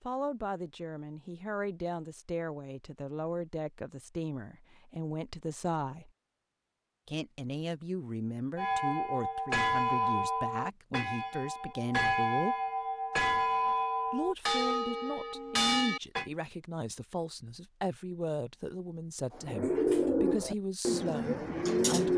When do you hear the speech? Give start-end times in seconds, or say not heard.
0.0-6.1, 7.0-12.6, 14.1-22.1.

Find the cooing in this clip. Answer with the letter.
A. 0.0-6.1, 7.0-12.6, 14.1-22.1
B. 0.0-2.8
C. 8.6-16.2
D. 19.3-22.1
D.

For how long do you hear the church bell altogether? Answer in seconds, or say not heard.
8 s.